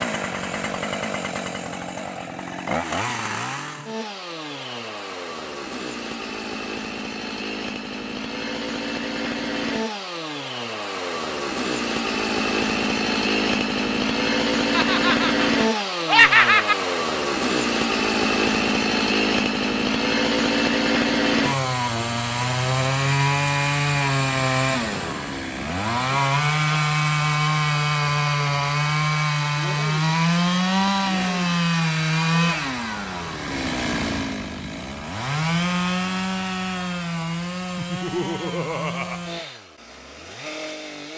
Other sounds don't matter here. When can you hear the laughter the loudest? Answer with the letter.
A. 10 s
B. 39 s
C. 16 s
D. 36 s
C.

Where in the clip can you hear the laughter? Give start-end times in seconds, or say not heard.
14.7-16.8, 37.8-39.2.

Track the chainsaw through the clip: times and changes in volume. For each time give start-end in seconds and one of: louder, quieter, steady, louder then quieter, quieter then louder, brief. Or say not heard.
0.0-41.1 louder then quieter.